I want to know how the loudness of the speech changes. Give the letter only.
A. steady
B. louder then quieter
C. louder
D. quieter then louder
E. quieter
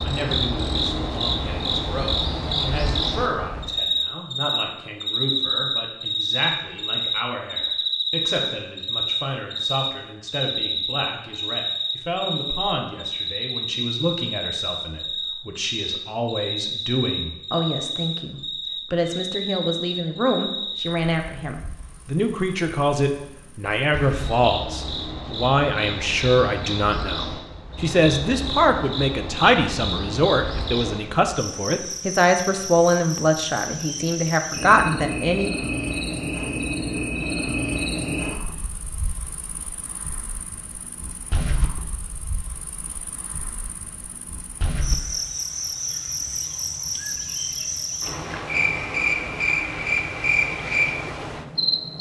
C.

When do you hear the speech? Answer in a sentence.
The speech can be heard from 0.0 to 35.5 s.